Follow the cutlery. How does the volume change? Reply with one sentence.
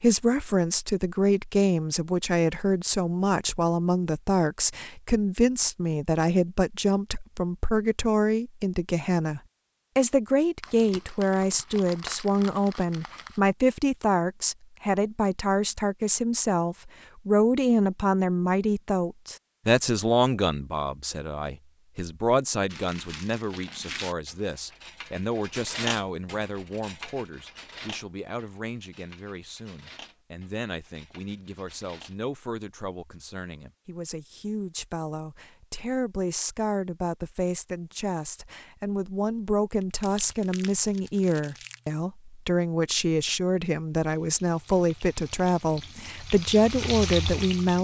The loudness of the cutlery goes up, then down.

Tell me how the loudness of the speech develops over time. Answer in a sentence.
The volume of the speech goes down, then up.